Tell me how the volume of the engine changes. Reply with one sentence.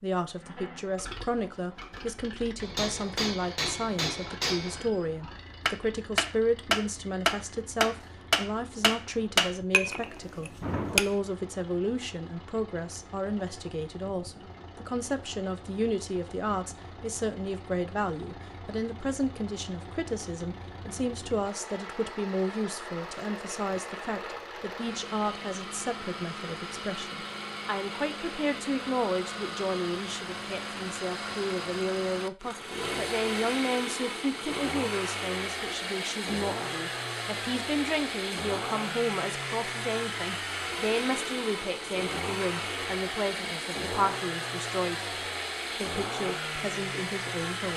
The volume of the engine goes up.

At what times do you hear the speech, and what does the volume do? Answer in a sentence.
The speech can be heard from 0.0 to 45.0 s, at a steady volume; and briefly from 45.7 to 47.7 s.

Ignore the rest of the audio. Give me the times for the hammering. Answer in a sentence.
The hammering can be heard from 2.6 to 11.1 s.